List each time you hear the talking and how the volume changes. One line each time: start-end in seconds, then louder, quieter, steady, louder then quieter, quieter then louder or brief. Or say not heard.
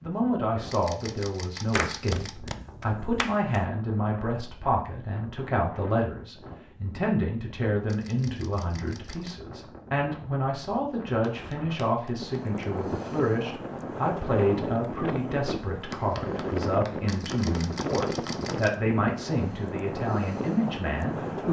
0.0-21.4 steady.